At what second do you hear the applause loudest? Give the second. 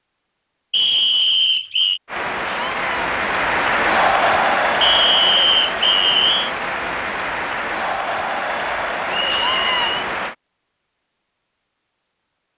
4 s.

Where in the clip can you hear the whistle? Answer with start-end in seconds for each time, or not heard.
0.7-2.0, 4.8-6.5, 9.1-10.1.